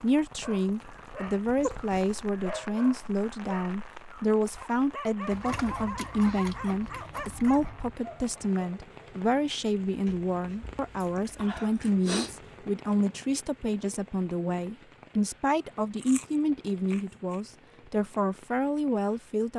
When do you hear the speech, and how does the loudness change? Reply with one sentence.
The speech can be heard from 0.0 to 19.5 s, at a steady volume.